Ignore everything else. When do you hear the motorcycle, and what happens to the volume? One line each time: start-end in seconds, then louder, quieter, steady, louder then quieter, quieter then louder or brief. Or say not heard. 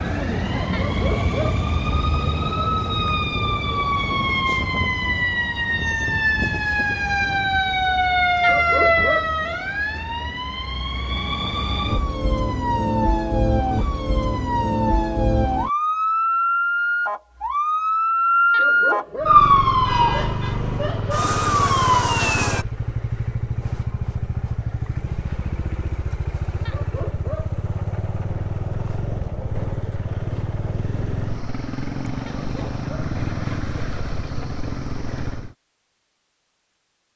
19.2-35.5 steady.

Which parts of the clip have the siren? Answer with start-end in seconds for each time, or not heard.
0.0-22.6.